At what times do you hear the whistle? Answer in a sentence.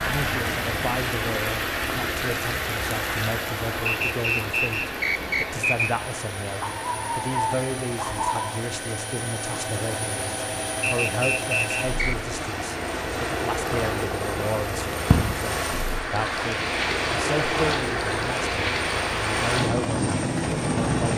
The whistle can be heard from 3.9 to 5.9 s and from 10.8 to 12.2 s.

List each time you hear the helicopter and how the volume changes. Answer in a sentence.
You can hear the helicopter from 0.0 to 21.1 s, getting louder.